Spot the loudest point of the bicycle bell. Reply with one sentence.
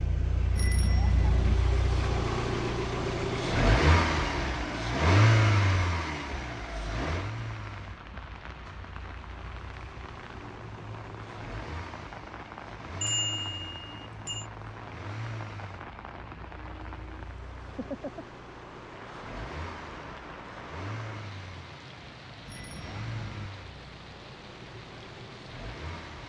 The volume of the bicycle bell peaks at 13 seconds.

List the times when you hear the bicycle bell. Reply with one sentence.
The bicycle bell can be heard from 0.6 to 1.6 s, from 13.0 to 14.4 s and from 22.4 to 23.5 s.